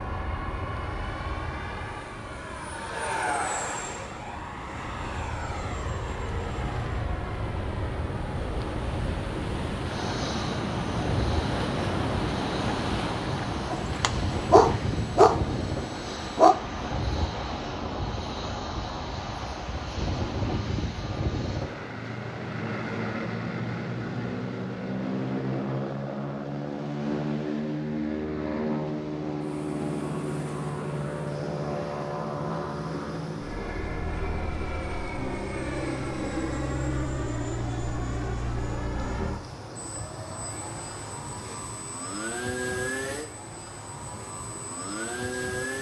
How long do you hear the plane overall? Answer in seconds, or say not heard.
46 s.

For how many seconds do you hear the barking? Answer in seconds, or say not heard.
3 s.